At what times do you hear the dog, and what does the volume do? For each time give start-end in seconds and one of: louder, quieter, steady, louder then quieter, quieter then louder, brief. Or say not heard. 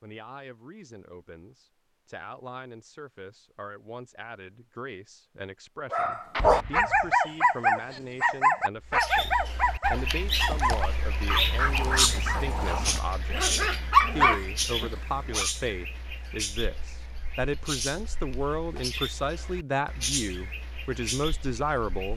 5.9-15.5 quieter then louder.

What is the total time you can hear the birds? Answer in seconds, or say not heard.
13 s.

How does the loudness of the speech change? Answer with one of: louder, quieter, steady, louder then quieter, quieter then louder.
louder.